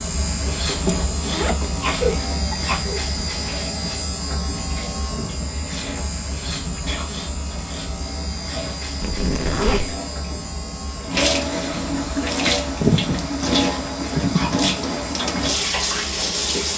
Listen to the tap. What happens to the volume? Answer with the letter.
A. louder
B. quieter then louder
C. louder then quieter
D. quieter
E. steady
A.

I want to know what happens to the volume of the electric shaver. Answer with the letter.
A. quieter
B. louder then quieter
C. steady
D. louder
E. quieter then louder
A.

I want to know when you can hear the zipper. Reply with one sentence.
You can hear the zipper from 0.5 to 2.2 s and from 9.0 to 10.0 s.